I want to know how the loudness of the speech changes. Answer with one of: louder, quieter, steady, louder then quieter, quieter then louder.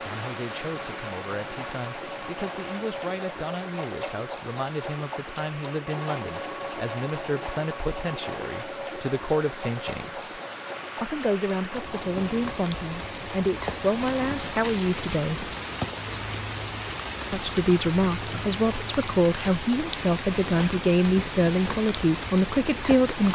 louder.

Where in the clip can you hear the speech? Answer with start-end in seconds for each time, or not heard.
0.0-10.4, 11.0-15.5, 17.3-23.2.